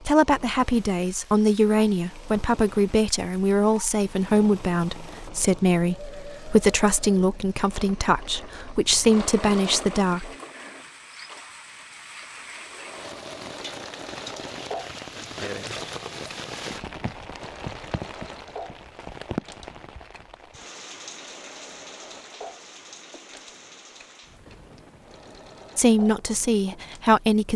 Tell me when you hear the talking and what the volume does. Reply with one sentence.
The talking can be heard from 0.1 to 10.3 s, at a steady volume; and briefly from 25.8 to 27.5 s.